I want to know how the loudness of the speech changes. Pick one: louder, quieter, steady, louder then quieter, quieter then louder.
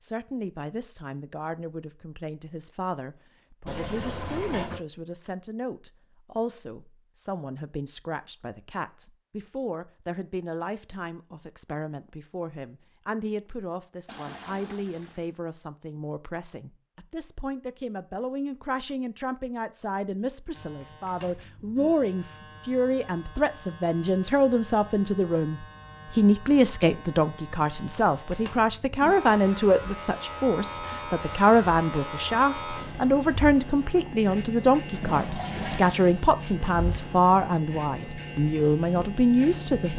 louder.